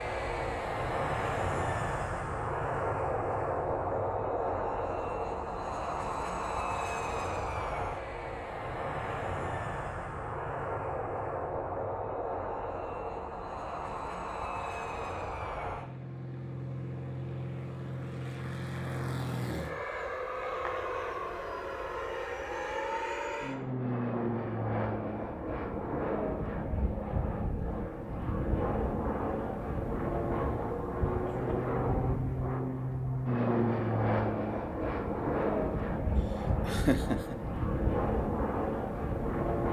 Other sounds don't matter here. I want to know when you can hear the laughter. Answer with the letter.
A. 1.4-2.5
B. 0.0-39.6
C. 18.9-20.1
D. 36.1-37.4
D.